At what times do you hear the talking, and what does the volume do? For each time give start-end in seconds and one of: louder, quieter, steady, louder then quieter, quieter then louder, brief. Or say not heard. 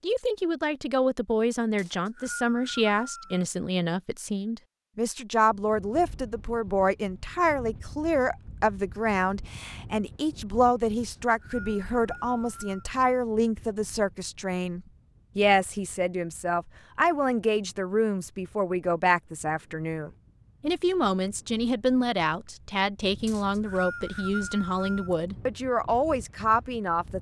0.0-27.1 steady.